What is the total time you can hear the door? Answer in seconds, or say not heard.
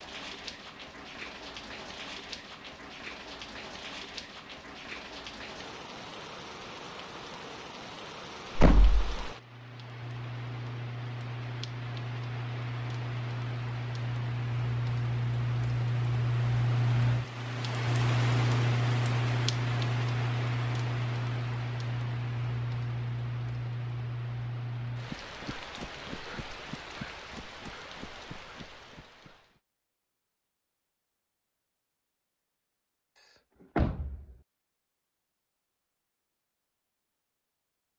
2 s.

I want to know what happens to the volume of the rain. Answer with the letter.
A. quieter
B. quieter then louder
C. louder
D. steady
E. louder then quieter
E.